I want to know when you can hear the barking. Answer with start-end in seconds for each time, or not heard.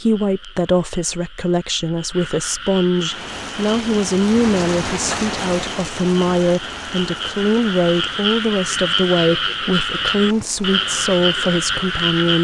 not heard.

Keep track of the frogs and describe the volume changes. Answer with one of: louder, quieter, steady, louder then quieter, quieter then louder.
louder.